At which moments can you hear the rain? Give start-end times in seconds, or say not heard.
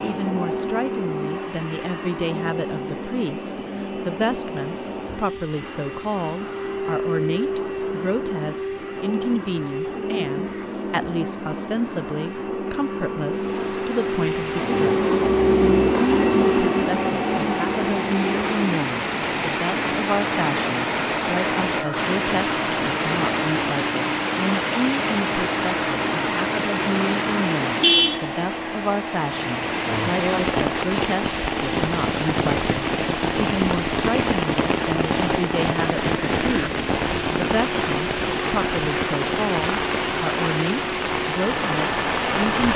13.3-42.7.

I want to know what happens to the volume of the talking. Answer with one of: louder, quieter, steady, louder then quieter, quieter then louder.
steady.